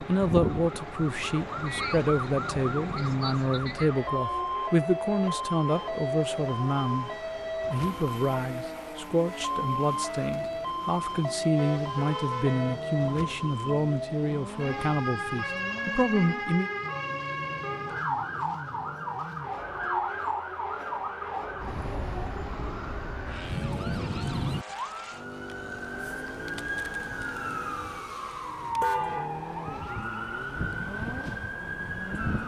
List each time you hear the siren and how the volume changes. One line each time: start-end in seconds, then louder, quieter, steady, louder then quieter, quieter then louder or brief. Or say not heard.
0.0-32.4 steady.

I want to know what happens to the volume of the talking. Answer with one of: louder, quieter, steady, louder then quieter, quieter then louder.
steady.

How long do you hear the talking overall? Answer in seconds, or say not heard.
16 s.